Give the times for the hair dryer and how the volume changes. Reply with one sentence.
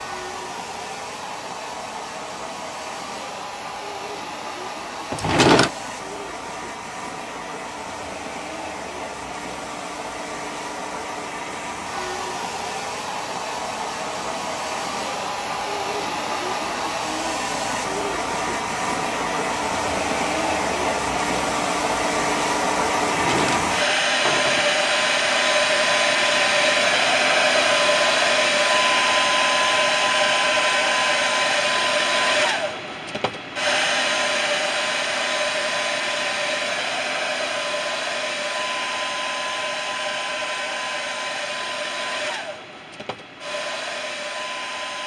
The hair dryer can be heard from 0.0 to 45.0 s, getting louder then quieter.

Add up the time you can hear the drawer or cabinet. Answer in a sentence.
The drawer or cabinet can be heard for 2 seconds in total.